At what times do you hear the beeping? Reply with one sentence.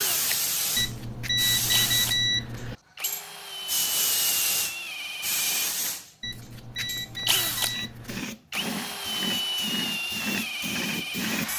The beeping can be heard from 0.8 to 2.8 s and from 6.2 to 8.2 s.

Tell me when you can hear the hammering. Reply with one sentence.
The hammering can't be heard in this clip.